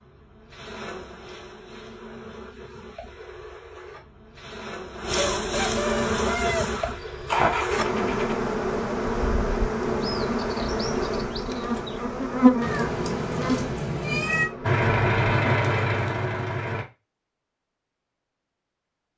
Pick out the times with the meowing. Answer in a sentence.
You can hear the meowing from 12.6 to 14.5 s.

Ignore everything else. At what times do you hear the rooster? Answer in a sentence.
The rooster can be heard from 5.2 to 6.8 s.